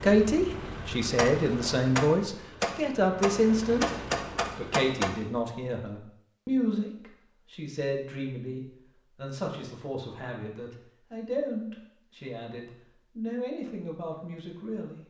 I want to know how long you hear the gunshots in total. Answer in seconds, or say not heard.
4 s.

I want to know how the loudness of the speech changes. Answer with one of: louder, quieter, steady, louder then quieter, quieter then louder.
quieter.